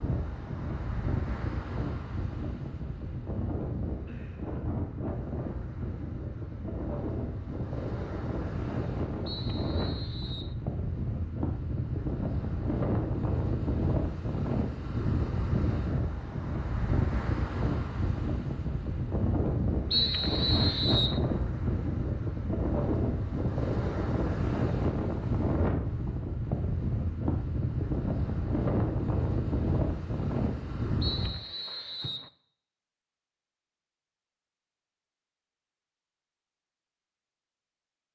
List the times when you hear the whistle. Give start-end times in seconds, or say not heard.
9.2-10.6, 19.9-21.2, 31.0-32.3.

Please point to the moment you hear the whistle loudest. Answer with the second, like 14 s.
20 s.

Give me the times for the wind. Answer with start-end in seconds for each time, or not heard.
0.0-31.4.